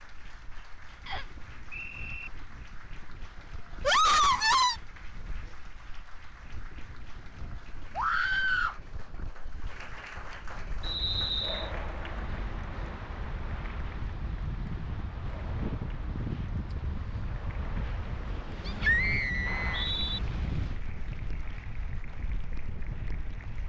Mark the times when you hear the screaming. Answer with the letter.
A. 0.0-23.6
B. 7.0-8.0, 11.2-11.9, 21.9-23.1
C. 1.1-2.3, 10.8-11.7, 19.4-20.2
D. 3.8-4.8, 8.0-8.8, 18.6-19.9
D.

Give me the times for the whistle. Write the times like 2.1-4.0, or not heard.
1.1-2.3, 10.8-11.7, 19.4-20.2.